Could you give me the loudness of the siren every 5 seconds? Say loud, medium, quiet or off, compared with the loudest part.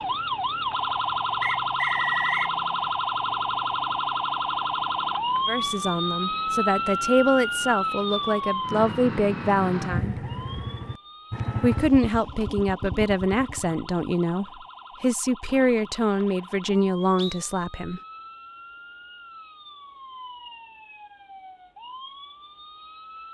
loud, loud, quiet, quiet, quiet.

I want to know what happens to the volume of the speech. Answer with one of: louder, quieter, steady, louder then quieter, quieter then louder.
steady.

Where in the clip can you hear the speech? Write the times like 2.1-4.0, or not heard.
5.5-10.2, 11.6-18.0.